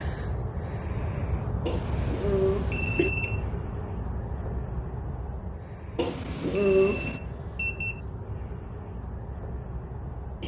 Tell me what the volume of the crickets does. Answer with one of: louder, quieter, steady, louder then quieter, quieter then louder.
quieter.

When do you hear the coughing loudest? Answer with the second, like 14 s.
7 s.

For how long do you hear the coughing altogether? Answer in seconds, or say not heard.
3 s.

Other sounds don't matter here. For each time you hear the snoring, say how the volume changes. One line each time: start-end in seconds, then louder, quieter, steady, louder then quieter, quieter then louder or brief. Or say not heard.
not heard.